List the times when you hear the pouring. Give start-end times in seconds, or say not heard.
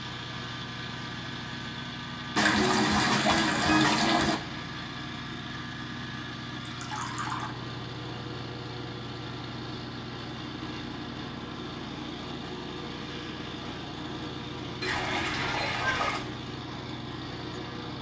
2.4-4.3, 6.7-7.5, 14.8-16.4.